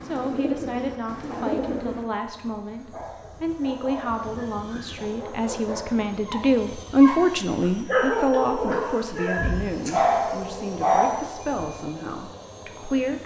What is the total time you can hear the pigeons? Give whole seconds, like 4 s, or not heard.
2 s.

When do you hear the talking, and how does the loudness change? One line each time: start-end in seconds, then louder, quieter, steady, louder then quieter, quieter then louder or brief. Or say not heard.
0.0-13.2 louder then quieter.